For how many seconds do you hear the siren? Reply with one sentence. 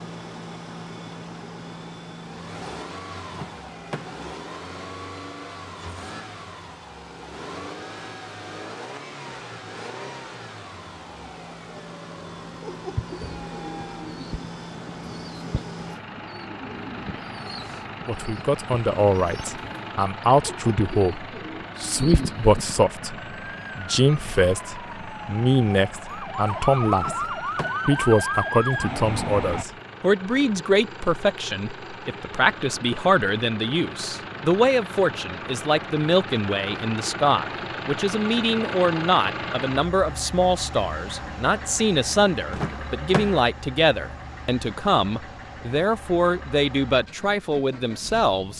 You can hear the siren for 7 seconds altogether.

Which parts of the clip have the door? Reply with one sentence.
You can hear the door from 3.3 to 4.2 s, from 26.9 to 27.9 s and from 42.5 to 43.5 s.